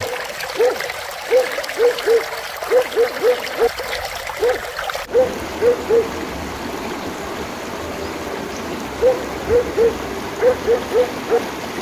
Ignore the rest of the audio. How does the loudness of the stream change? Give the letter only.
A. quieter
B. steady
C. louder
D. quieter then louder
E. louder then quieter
B.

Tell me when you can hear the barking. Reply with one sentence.
The barking can be heard from 0.0 to 6.2 s and from 8.9 to 11.4 s.